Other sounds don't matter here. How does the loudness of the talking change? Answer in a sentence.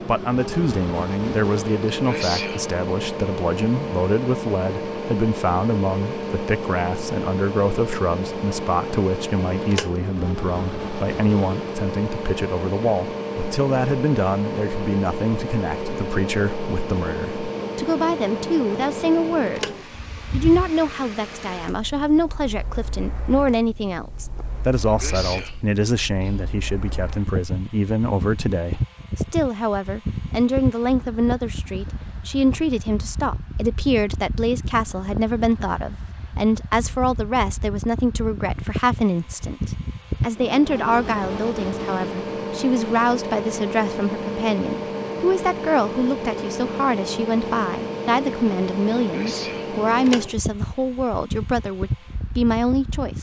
The volume of the talking stays about the same.